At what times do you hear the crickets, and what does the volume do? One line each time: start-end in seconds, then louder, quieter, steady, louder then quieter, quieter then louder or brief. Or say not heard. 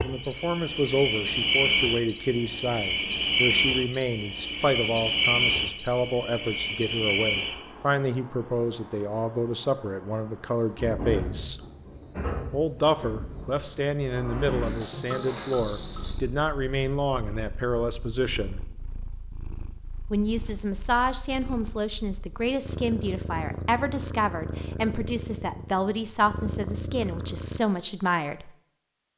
0.0-16.1 quieter.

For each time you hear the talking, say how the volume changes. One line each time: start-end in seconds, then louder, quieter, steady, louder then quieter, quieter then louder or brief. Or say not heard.
0.0-11.6 steady
12.5-18.6 steady
20.1-28.5 steady.